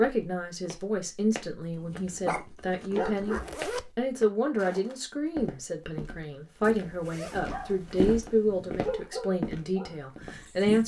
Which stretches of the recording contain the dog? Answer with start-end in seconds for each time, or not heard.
1.8-3.5, 7.5-10.8.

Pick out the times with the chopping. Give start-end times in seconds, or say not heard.
not heard.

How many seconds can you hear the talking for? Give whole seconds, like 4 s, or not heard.
11 s.